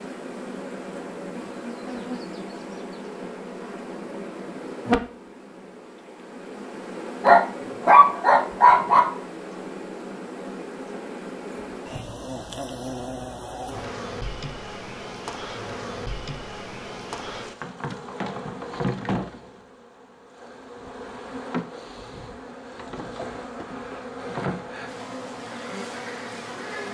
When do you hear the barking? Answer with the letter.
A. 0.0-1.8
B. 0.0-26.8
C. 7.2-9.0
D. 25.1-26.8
C.